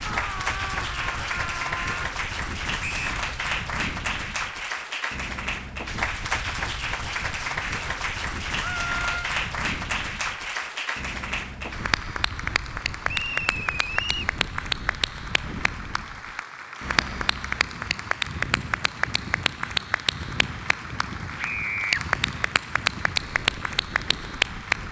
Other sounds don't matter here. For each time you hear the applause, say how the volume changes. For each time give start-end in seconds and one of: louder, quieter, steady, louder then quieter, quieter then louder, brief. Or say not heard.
0.0-24.8 steady.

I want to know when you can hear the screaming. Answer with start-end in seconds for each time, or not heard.
0.1-2.0, 8.6-9.3, 21.4-22.0.